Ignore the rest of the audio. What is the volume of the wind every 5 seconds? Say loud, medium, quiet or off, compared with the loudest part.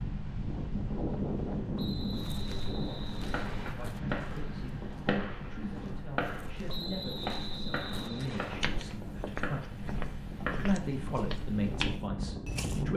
loud, medium, loud.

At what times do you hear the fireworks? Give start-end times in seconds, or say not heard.
3.1-10.8.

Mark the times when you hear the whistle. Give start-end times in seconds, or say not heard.
1.8-3.8, 6.7-8.6.